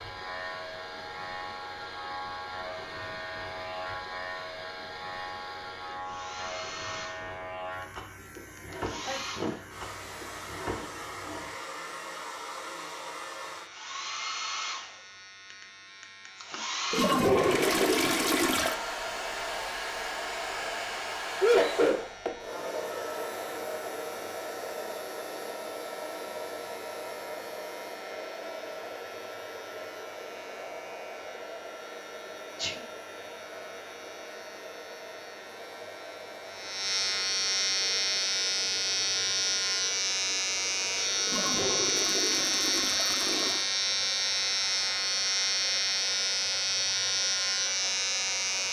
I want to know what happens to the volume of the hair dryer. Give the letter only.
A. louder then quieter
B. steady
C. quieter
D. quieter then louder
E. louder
A.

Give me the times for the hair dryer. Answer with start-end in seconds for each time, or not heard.
0.0-48.6.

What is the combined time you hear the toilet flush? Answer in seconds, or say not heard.
4 s.